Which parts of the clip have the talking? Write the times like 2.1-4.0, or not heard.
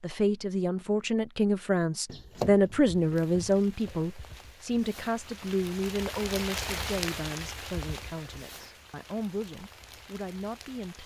0.0-11.0.